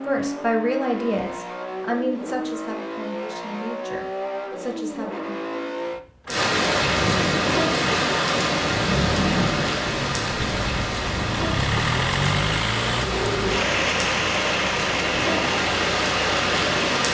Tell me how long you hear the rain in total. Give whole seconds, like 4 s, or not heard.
11 s.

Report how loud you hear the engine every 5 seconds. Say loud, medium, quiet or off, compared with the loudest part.
medium, loud, loud, loud.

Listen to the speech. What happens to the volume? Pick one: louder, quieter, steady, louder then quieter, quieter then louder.
quieter.